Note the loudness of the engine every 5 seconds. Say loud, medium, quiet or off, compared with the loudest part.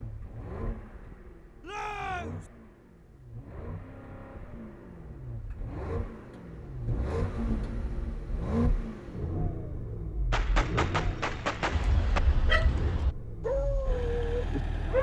medium, loud, loud.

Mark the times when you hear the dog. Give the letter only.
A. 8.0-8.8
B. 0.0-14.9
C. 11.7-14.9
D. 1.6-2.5
C.